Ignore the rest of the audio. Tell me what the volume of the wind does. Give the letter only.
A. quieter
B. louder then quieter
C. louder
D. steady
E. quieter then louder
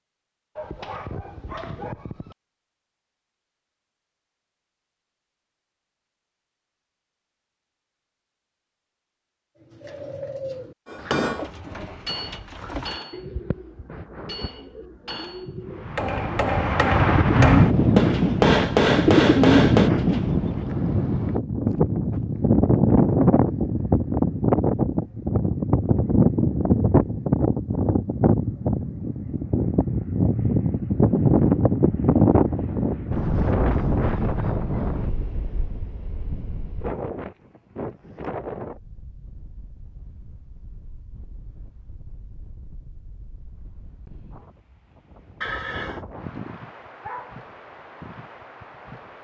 A.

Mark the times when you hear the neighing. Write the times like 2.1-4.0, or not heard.
45.4-46.0.